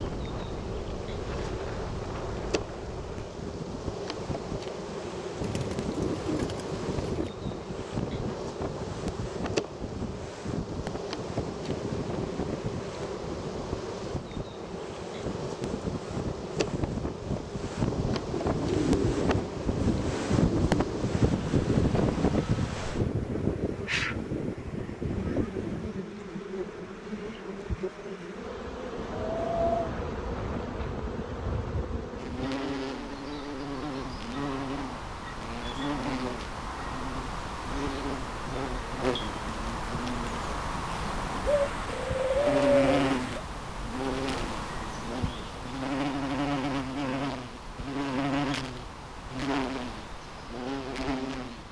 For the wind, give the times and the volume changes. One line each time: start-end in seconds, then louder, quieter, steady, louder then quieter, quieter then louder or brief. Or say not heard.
0.0-32.6 louder then quieter.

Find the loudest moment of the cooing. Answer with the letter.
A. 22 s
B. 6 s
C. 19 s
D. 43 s
D.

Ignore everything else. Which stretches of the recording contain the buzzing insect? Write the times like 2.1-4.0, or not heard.
0.0-51.6.